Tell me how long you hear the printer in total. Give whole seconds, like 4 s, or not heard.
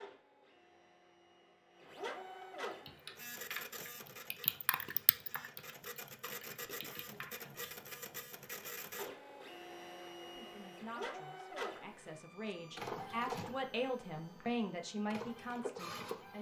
16 s.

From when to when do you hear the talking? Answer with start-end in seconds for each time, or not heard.
10.2-16.3.